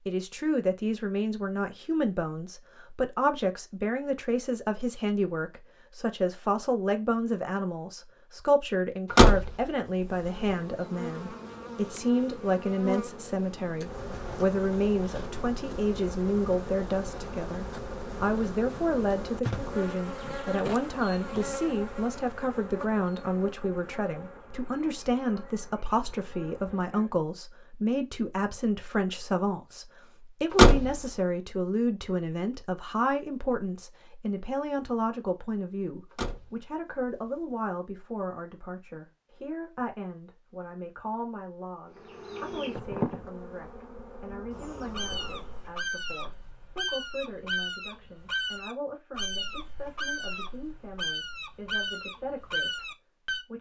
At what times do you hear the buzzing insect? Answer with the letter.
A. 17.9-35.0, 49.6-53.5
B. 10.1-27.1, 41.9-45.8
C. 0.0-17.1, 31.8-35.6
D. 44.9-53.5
B.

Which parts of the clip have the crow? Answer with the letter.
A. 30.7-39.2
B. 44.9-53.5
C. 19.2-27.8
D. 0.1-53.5
B.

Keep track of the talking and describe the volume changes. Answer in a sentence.
The loudness of the talking goes down.